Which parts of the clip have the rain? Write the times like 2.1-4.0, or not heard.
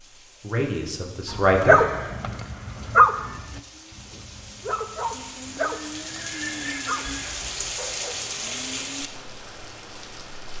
0.0-10.5.